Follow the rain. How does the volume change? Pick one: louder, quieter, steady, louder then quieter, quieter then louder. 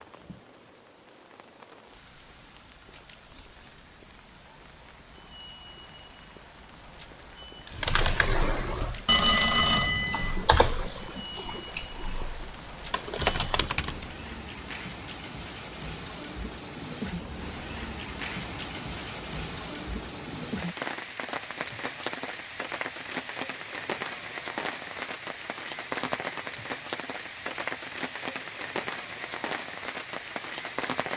louder.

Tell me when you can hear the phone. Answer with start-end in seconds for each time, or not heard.
9.1-10.4.